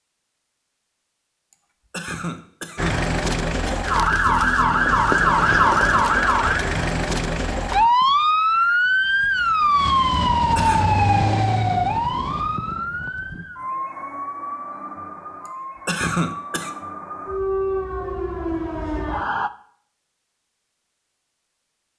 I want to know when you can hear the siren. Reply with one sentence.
You can hear the siren from 2.8 to 19.5 s.